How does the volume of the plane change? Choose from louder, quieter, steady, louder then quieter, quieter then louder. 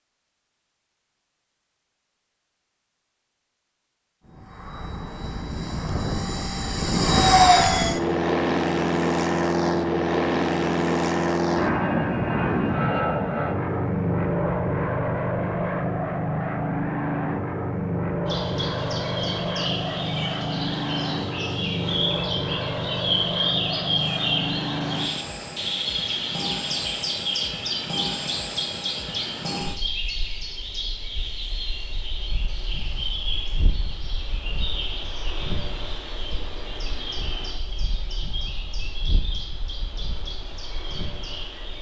quieter.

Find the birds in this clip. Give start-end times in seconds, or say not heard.
18.2-41.7.